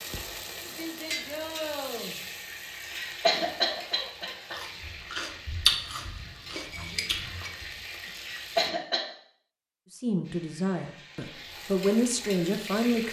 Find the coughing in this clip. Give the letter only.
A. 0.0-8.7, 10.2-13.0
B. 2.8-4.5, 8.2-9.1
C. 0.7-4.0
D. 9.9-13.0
B.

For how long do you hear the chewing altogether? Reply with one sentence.
The chewing can be heard for 3 seconds in total.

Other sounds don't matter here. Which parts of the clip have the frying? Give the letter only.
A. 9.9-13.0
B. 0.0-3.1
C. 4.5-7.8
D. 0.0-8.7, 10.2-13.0
D.